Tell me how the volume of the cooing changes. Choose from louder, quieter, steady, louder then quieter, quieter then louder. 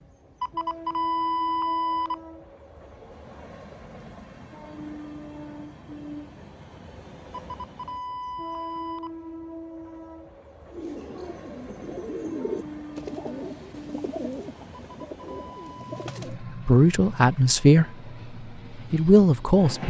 louder then quieter.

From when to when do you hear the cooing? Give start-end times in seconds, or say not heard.
10.7-16.4.